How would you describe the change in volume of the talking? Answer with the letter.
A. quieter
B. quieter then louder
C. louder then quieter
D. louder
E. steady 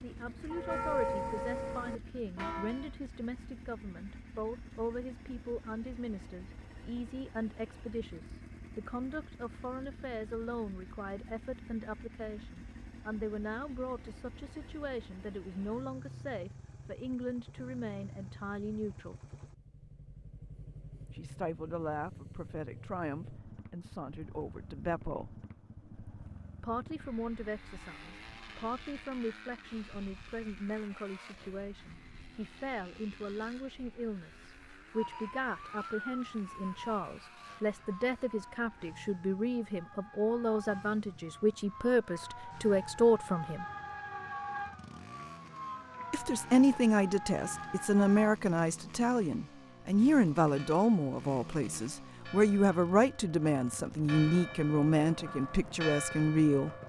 D.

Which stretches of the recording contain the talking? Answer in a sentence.
The talking can be heard from 0.0 to 19.1 s, from 21.1 to 25.4 s, from 26.6 to 43.6 s and from 46.1 to 56.7 s.